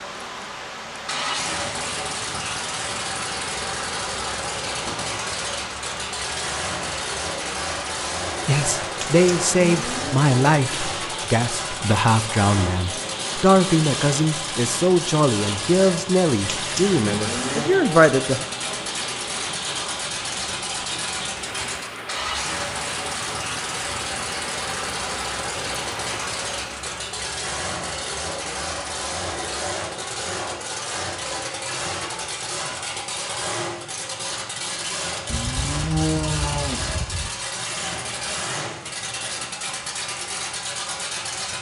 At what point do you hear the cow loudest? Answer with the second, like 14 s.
36 s.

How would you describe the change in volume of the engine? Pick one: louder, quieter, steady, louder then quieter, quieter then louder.
steady.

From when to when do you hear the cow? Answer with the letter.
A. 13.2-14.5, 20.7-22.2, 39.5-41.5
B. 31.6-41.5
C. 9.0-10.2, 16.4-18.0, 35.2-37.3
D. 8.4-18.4
C.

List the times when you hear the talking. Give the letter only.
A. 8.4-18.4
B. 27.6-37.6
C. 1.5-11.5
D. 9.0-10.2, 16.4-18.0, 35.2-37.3
A.